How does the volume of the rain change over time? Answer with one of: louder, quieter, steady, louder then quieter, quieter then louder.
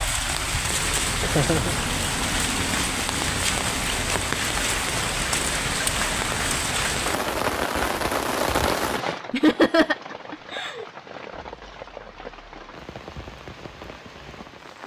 quieter.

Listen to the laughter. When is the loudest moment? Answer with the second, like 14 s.
10 s.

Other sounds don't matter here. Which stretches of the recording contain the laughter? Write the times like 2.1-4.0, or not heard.
1.1-1.8, 9.3-10.8.